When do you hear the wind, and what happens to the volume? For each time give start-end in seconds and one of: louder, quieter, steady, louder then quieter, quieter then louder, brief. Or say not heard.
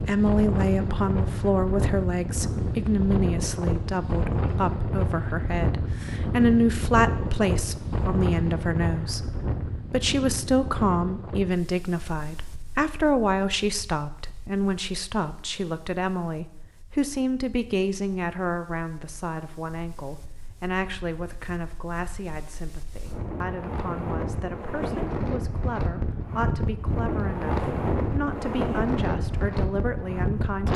0.0-30.7 quieter then louder.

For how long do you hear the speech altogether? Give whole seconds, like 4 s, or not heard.
31 s.